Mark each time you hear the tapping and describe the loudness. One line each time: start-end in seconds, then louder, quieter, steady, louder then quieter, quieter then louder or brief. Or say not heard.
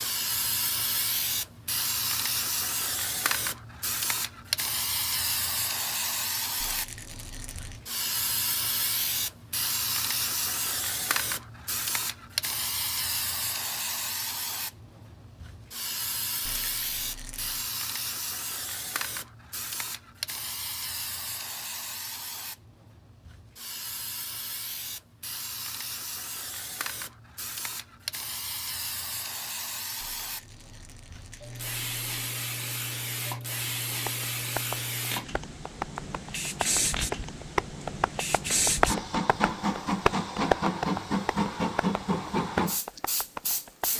33.9-43.9 louder then quieter.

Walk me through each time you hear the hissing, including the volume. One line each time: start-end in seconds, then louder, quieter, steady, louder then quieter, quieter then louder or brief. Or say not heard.
0.0-43.9 quieter then louder.